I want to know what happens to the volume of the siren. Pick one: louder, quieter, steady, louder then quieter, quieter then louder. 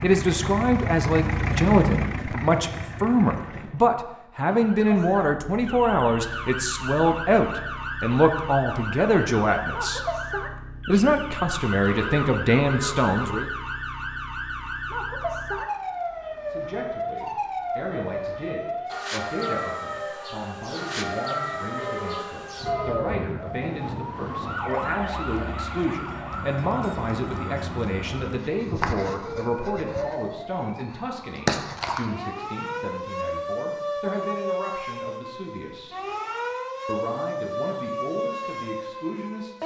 steady.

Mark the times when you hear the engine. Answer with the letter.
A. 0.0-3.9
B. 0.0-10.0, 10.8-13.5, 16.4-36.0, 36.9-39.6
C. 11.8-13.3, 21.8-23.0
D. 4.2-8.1
A.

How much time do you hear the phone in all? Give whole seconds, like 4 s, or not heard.
3 s.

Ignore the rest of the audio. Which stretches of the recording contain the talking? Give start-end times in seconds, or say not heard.
0.0-10.0, 10.8-13.5, 16.4-36.0, 36.9-39.6.